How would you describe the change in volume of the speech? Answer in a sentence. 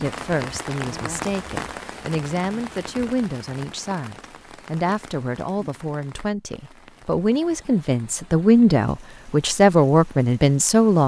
The loudness of the speech goes up.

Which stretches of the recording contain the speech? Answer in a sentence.
The speech can be heard from 0.0 to 11.0 s.